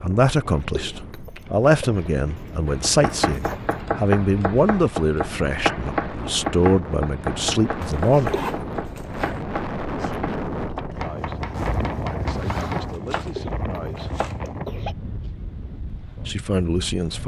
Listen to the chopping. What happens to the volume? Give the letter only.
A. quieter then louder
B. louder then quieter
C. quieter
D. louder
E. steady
C.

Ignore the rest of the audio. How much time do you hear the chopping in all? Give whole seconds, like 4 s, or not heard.
12 s.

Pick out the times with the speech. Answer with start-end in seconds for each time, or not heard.
0.0-8.3, 10.9-11.4, 12.0-14.2, 16.1-17.2.